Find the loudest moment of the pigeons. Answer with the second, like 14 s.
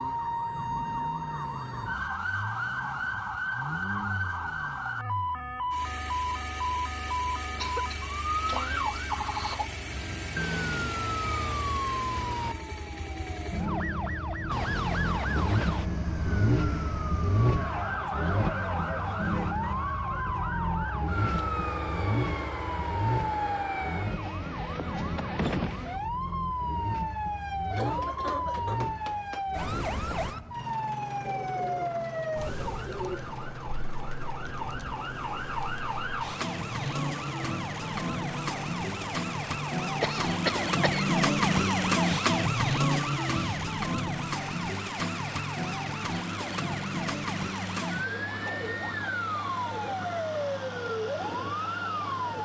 33 s.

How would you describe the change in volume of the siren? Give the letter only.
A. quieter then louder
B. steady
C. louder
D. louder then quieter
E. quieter
B.